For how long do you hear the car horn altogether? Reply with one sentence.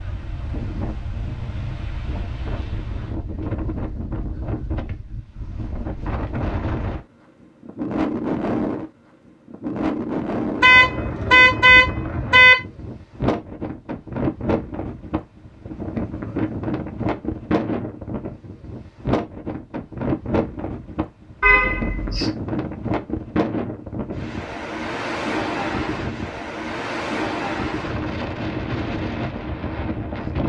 The car horn can be heard for 3 seconds in total.